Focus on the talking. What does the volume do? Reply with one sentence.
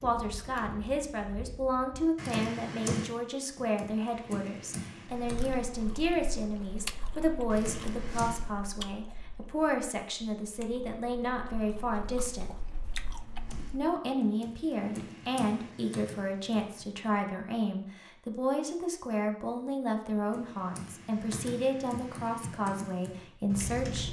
The volume of the talking stays about the same.